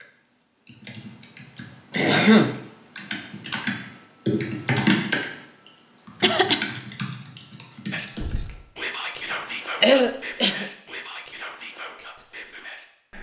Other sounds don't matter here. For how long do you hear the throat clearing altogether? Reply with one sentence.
You can hear the throat clearing for 2 seconds altogether.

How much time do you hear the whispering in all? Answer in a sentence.
The whispering can be heard for 5 seconds in total.